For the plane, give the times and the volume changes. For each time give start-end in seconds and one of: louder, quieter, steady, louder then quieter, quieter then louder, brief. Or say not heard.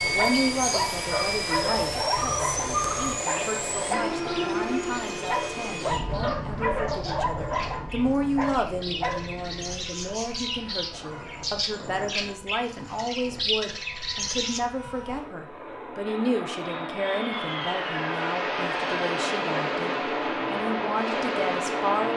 0.0-22.1 quieter then louder.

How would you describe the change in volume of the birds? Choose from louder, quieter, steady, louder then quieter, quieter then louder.
quieter then louder.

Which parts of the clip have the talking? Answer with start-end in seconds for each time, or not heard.
0.0-22.1.